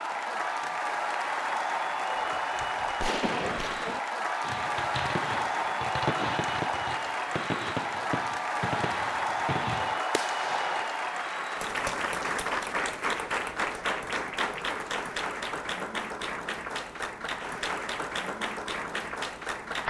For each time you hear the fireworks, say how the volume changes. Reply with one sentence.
You can hear the fireworks from 2.1 to 10.9 s, at a steady volume.